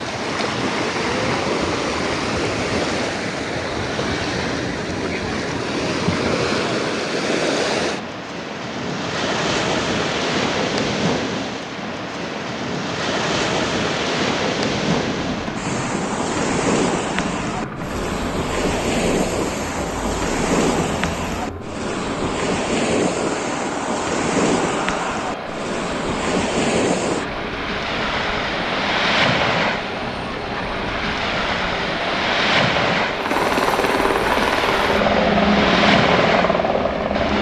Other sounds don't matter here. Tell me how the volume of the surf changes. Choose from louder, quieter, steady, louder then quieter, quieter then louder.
steady.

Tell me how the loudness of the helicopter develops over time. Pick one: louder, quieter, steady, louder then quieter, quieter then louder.
louder.